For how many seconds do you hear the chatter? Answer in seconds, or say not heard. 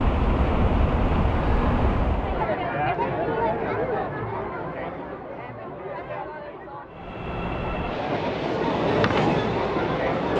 8 s.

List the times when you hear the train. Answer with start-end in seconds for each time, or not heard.
0.0-2.5, 6.9-10.3.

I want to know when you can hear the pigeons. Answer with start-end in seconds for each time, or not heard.
not heard.